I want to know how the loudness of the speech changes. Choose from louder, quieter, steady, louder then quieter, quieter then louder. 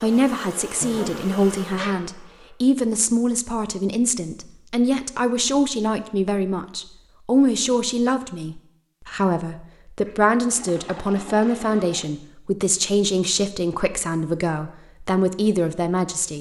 steady.